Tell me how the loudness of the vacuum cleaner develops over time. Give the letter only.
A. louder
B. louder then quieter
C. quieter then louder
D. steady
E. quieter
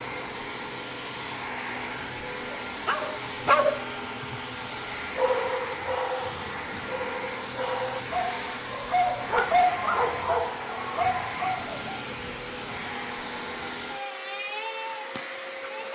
D.